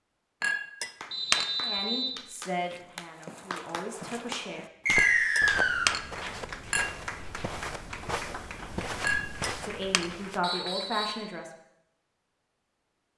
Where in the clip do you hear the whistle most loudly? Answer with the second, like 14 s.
5 s.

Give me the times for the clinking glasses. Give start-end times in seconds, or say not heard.
0.4-1.8, 5.0-7.0, 9.0-10.1.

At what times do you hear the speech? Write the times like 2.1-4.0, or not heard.
1.6-4.7, 9.6-11.5.